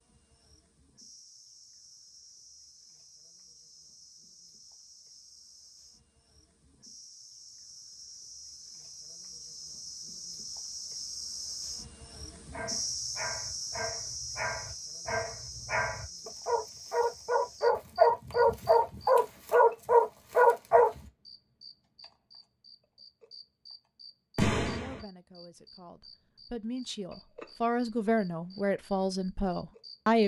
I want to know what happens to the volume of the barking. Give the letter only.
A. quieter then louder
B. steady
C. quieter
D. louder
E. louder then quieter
D.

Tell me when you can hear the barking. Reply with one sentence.
You can hear the barking from 12.5 to 20.9 s.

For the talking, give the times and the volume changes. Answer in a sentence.
You can hear the talking from 24.6 to 30.2 s, getting louder.